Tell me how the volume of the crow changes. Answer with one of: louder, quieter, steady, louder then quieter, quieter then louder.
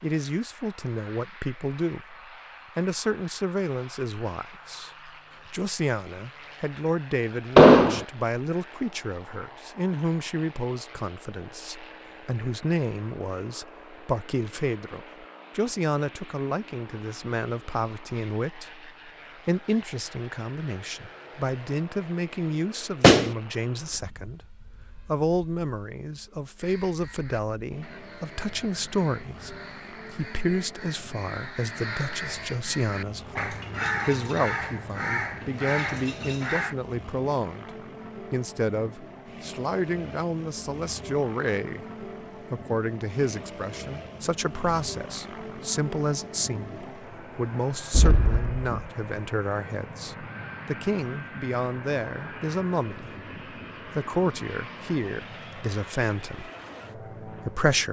louder.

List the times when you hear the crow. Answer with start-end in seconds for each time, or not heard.
26.6-36.8.